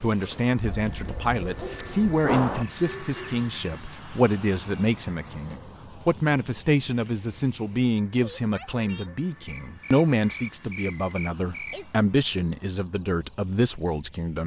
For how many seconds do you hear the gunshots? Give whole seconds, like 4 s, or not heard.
2 s.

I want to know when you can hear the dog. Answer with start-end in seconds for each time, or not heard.
not heard.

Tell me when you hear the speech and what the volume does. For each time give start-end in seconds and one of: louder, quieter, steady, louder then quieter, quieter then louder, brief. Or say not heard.
0.0-14.4 steady.